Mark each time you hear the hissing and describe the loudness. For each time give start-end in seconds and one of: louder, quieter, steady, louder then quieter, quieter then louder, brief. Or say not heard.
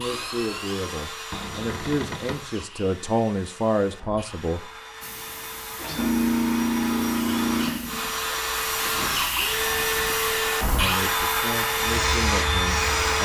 5.0-13.2 quieter then louder.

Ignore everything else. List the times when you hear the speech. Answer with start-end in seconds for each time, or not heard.
0.0-4.7, 10.7-13.2.